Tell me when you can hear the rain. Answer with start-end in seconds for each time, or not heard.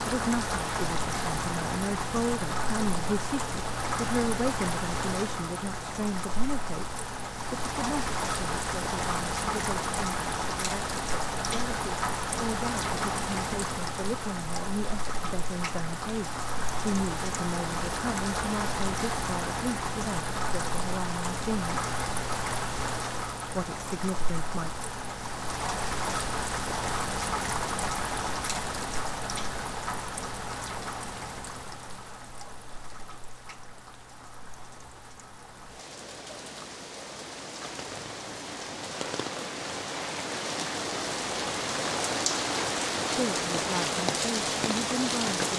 0.0-45.5.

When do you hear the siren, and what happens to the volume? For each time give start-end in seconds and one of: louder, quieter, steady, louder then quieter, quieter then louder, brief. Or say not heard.
not heard.